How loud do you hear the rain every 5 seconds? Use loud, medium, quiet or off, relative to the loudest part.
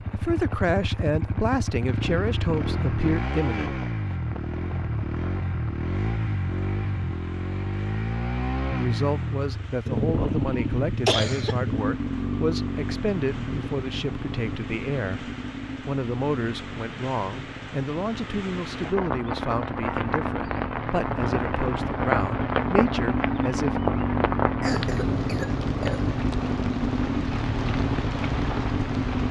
quiet, quiet, quiet, medium, loud, medium.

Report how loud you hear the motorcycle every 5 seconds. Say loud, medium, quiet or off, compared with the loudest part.
loud, loud, loud, medium, loud, loud.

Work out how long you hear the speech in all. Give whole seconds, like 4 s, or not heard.
19 s.